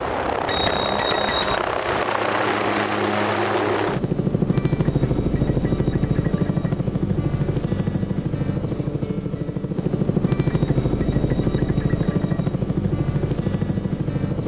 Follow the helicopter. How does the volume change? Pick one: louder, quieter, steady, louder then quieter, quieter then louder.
steady.